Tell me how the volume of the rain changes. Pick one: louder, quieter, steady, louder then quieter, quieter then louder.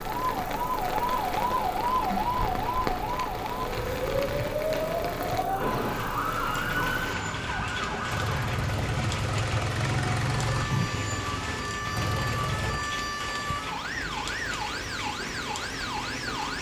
steady.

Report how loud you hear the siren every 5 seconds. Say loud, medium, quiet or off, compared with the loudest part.
loud, loud, medium, medium.